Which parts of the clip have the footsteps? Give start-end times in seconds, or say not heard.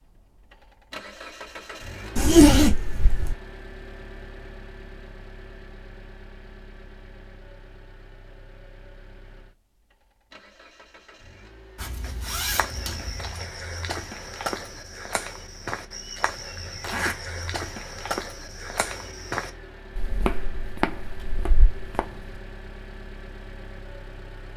12.0-22.1.